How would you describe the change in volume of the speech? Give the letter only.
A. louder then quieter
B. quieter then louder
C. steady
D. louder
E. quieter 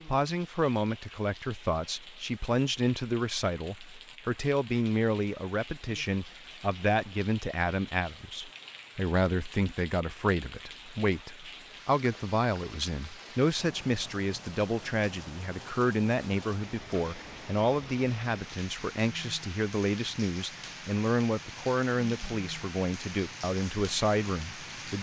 C.